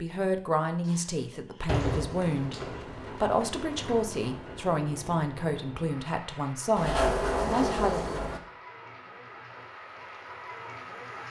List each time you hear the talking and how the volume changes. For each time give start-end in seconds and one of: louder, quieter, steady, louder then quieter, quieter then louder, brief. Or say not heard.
0.0-8.2 steady.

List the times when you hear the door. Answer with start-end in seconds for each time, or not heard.
0.8-2.8, 6.8-8.4.